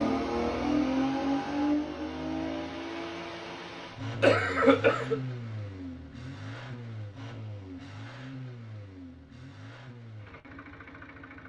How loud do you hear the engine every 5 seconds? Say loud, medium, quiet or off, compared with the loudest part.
loud, medium, quiet.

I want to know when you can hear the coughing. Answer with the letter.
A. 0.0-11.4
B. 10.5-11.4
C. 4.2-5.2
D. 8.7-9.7
C.